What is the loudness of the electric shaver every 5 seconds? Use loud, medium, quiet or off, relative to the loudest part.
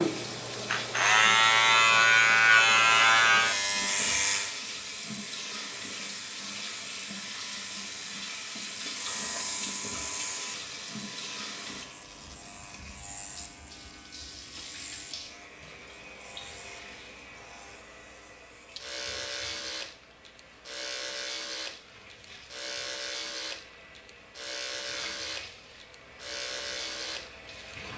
loud, quiet, quiet, quiet, quiet, quiet.